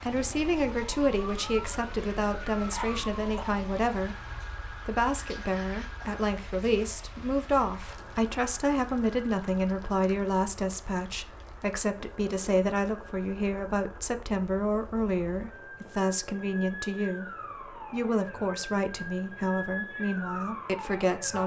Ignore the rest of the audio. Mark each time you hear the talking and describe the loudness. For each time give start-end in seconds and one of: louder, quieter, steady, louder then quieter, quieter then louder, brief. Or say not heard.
0.0-21.4 steady.